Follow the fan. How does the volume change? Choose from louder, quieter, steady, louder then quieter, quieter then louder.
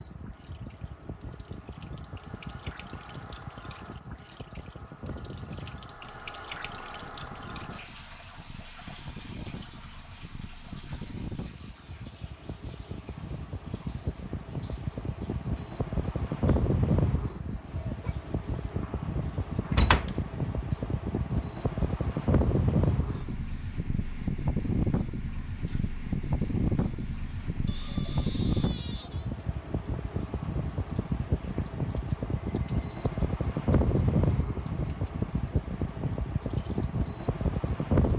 louder.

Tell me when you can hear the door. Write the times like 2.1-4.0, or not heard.
19.2-20.1.